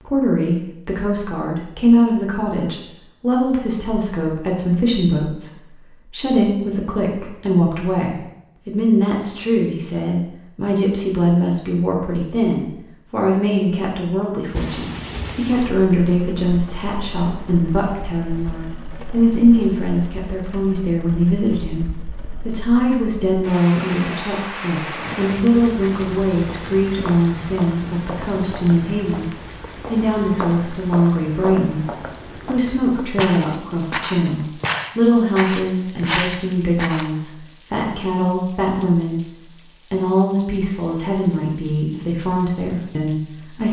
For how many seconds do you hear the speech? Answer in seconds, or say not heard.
43 s.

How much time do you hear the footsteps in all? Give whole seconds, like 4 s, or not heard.
11 s.